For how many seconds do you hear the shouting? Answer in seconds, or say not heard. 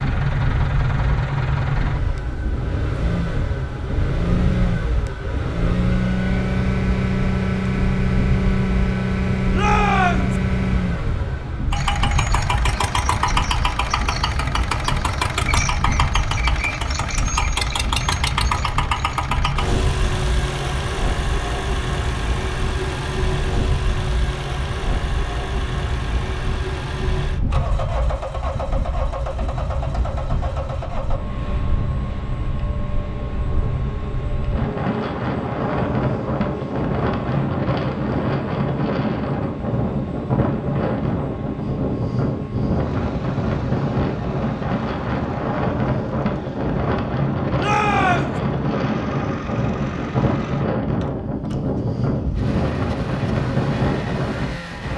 2 s.